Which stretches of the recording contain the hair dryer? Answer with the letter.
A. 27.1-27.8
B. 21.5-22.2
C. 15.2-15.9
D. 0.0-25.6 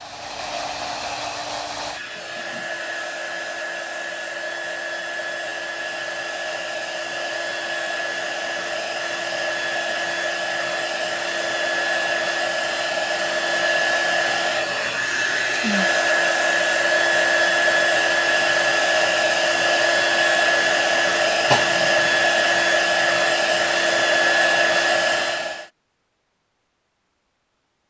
D.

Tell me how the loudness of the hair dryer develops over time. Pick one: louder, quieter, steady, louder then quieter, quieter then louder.
louder.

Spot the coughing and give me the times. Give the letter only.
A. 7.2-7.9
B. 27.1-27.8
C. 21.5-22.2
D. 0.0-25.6
C.